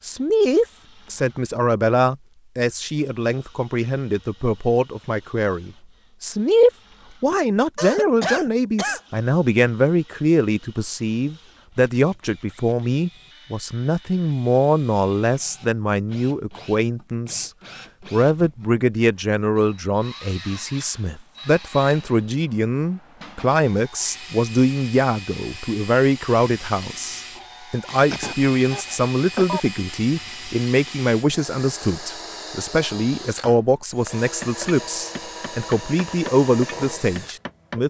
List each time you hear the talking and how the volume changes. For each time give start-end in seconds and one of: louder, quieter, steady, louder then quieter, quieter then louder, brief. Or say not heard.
0.0-37.8 steady.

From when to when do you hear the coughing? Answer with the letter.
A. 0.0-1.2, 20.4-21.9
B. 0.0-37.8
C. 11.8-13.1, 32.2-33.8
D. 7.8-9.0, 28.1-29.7
D.